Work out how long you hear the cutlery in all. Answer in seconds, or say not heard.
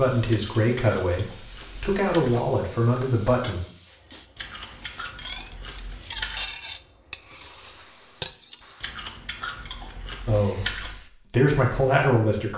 7 s.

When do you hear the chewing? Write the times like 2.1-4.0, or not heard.
0.2-2.5, 4.3-6.5, 8.8-11.0.